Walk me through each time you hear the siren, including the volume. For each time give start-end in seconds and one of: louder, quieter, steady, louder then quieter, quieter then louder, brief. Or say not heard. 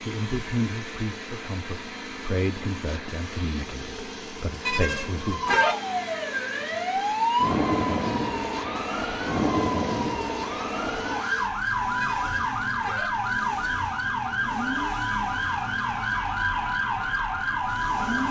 5.2-18.2 steady.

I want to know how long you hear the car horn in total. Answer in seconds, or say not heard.
2 s.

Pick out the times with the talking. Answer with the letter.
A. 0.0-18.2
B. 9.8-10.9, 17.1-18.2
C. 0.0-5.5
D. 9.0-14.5
C.